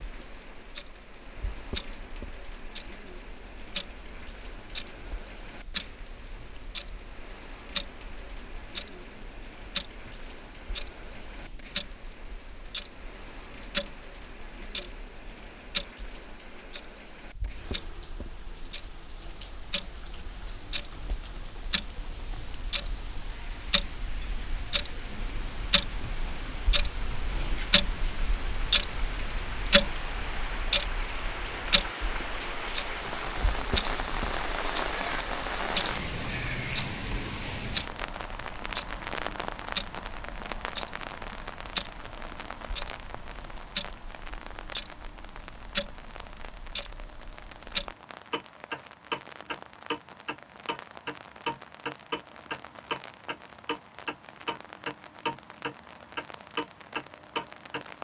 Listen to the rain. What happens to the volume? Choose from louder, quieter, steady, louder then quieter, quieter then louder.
louder then quieter.